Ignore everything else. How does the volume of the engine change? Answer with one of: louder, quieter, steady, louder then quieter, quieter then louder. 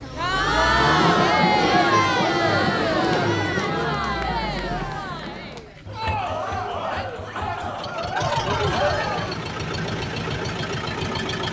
quieter then louder.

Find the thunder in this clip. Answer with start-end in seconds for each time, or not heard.
0.9-5.6.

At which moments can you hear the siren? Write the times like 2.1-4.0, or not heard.
not heard.